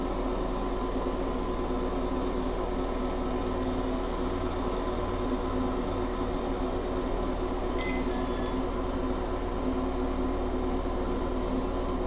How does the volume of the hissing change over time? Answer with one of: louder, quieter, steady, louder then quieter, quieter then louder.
steady.